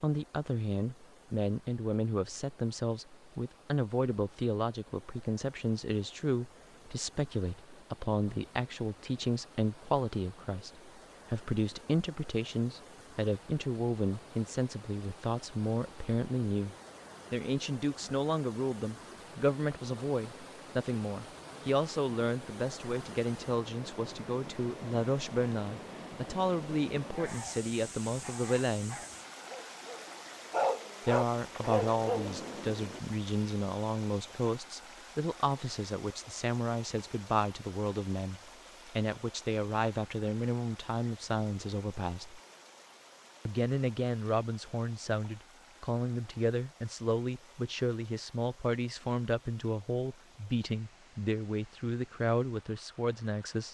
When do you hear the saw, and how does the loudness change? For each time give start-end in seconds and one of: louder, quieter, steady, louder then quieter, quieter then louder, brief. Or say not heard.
not heard.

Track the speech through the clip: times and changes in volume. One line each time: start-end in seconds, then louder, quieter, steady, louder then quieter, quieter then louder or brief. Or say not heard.
0.0-29.0 steady
31.1-42.4 steady
43.5-53.6 steady.